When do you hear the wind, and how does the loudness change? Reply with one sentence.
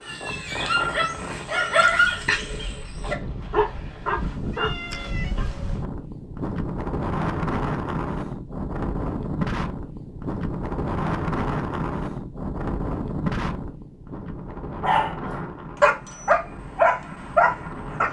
The wind can be heard from 0.0 to 18.0 s, getting louder then quieter.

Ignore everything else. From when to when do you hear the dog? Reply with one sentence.
You can hear the dog from 0.0 to 5.5 s and from 14.8 to 18.0 s.